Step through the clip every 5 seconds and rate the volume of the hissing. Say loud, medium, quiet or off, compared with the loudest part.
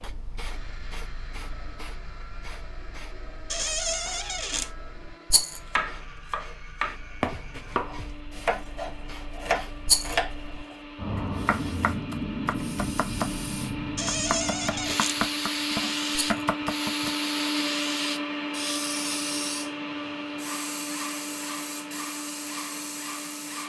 quiet, quiet, loud, loud, medium.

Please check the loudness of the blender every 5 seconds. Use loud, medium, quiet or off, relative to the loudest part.
quiet, quiet, medium, loud, medium.